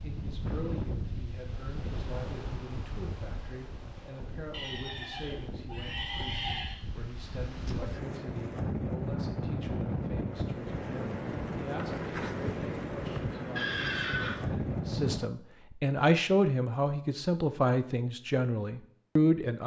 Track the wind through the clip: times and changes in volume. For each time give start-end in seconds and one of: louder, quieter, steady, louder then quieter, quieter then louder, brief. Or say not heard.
0.0-15.2 quieter then louder.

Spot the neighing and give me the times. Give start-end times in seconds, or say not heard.
4.5-6.8, 13.6-14.4.